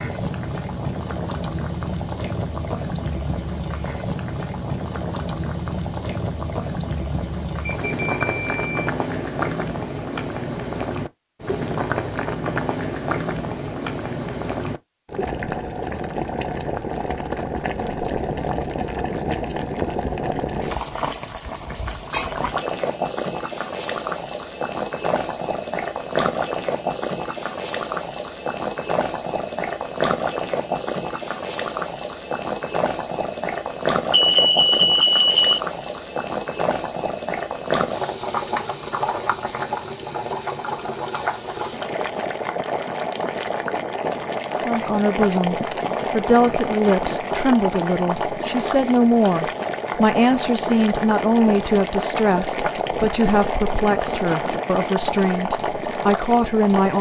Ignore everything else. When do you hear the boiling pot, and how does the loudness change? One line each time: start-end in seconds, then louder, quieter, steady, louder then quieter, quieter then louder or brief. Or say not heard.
0.0-56.9 steady.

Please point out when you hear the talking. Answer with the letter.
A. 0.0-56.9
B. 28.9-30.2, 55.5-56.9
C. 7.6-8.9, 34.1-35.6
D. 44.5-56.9
D.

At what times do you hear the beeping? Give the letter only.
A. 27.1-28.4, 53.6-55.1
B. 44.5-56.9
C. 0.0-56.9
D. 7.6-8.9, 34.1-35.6
D.